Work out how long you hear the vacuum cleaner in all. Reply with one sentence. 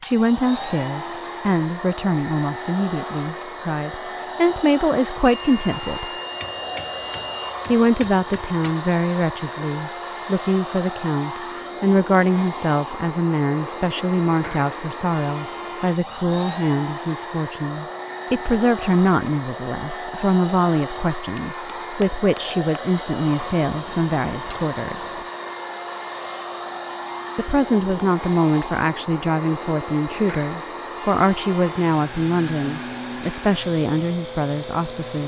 The vacuum cleaner can be heard for 35 seconds in total.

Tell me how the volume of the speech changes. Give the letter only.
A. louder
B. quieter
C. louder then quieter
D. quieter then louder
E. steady
E.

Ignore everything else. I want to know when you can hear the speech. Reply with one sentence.
The speech can be heard from 0.0 to 6.1 s, from 7.7 to 25.2 s and from 27.4 to 35.2 s.